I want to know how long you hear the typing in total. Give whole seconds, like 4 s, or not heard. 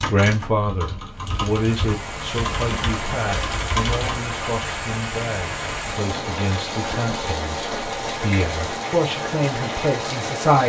5 s.